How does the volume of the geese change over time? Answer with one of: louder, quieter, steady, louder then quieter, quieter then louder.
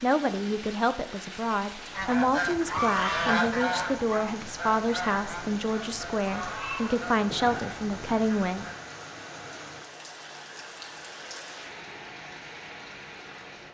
quieter.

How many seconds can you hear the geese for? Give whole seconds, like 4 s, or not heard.
7 s.